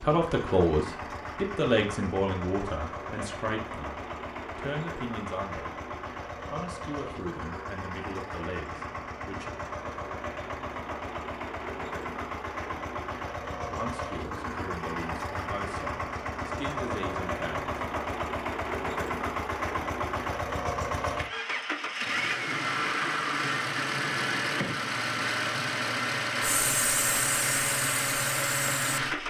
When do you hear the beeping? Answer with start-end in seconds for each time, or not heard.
not heard.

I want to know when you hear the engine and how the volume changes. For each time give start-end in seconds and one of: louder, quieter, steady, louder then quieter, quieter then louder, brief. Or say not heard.
0.0-29.2 louder.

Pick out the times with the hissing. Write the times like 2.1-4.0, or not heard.
26.4-29.0.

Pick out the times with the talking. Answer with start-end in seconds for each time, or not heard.
0.0-5.8, 6.5-9.5, 13.7-17.7.